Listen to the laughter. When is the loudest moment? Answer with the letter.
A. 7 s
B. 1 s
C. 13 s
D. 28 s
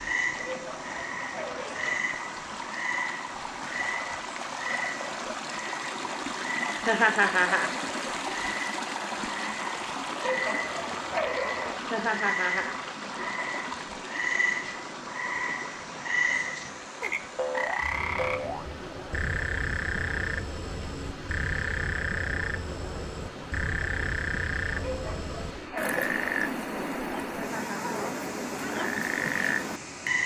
A.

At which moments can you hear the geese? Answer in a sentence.
The geese can't be heard in this clip.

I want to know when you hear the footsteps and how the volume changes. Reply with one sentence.
The footsteps can't be heard in this clip.